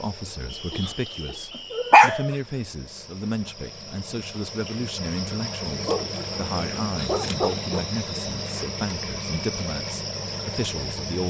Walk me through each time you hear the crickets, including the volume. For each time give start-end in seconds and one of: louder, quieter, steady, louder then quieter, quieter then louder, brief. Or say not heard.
0.0-11.2 louder.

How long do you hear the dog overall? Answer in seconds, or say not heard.
4 s.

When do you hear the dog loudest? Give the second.
2 s.